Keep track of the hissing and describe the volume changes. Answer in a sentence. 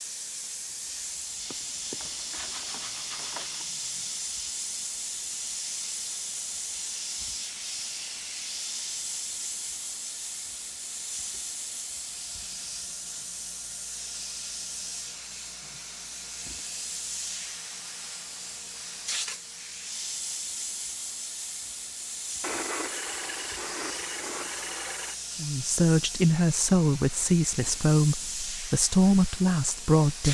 The volume of the hissing stays about the same.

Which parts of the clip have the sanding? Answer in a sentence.
The sanding can be heard from 1.5 to 3.7 s and from 22.4 to 25.1 s.